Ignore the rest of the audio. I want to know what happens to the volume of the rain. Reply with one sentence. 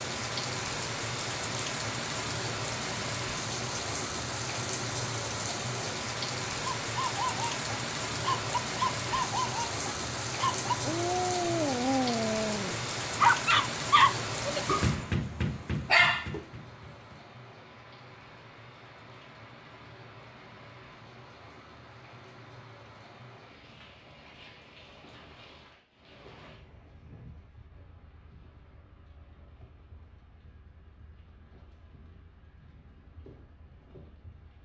The volume of the rain goes down.